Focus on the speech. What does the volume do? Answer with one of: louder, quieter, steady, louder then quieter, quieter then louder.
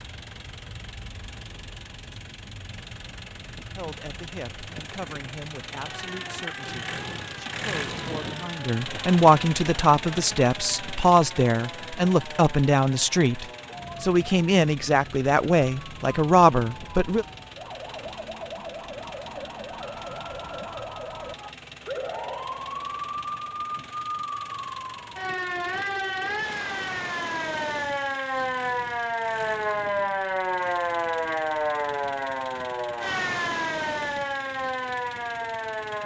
louder.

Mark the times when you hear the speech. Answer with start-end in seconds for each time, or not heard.
3.8-17.2.